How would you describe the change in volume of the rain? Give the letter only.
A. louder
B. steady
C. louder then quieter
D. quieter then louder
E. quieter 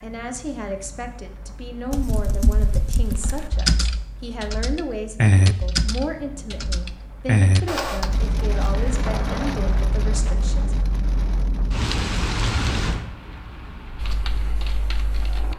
A.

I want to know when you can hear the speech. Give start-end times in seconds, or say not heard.
0.0-10.8.